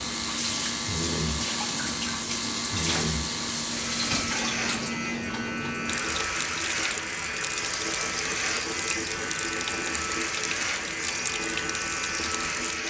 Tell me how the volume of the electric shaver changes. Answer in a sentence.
The loudness of the electric shaver stays about the same.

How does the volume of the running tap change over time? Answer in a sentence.
The volume of the running tap stays about the same.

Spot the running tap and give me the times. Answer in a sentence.
You can hear the running tap from 0.0 to 12.8 s.